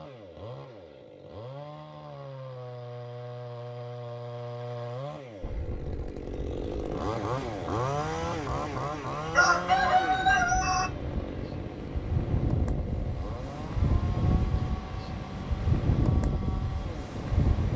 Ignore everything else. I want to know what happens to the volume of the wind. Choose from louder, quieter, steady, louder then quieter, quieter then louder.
louder.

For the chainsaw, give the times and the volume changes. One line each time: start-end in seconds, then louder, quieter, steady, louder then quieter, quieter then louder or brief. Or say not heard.
0.0-17.7 louder then quieter.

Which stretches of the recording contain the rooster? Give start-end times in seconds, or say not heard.
9.3-10.9.